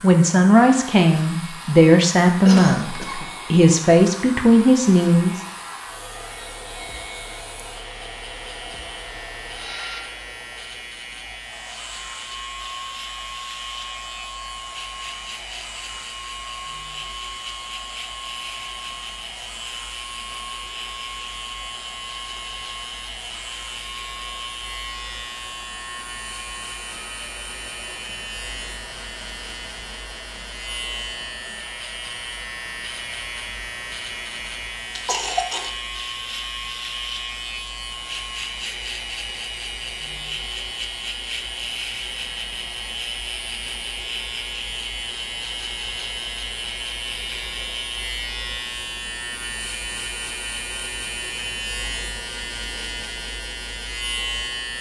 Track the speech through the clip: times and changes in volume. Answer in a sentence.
The speech can be heard from 0.0 to 5.4 s, at a steady volume.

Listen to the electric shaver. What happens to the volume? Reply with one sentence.
The loudness of the electric shaver goes up.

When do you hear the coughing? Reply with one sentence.
The coughing can be heard from 2.5 to 3.3 s and from 35.0 to 35.7 s.